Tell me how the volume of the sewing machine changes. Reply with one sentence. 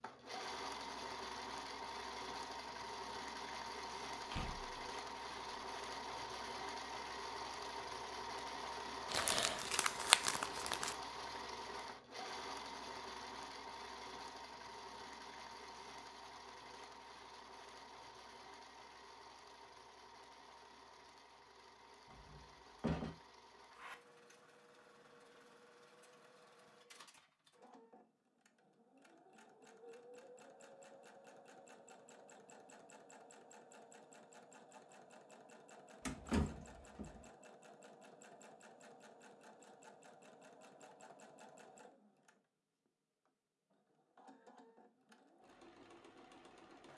The loudness of the sewing machine goes down.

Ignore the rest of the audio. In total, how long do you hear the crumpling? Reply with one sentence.
You can hear the crumpling for 2 seconds altogether.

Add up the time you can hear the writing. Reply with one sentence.
The writing can't be heard in this clip.